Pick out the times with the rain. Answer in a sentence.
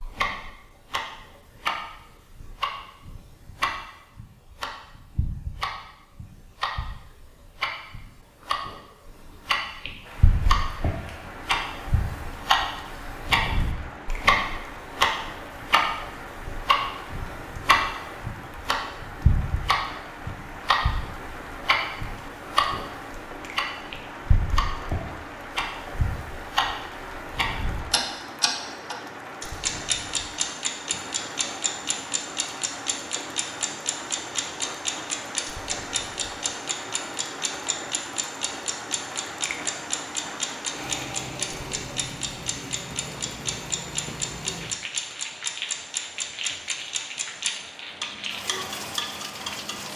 You can hear the rain from 10.0 to 49.9 s.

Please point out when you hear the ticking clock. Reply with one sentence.
The ticking clock can be heard from 0.0 to 49.9 s.